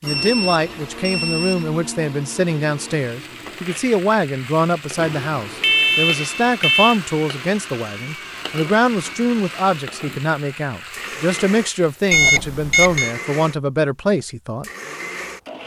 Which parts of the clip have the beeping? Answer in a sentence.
You can hear the beeping from 0.1 to 1.7 s, from 5.6 to 7.0 s and from 12.1 to 13.2 s.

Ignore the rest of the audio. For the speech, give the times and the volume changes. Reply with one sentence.
You can hear the speech from 0.0 to 14.7 s, at a steady volume.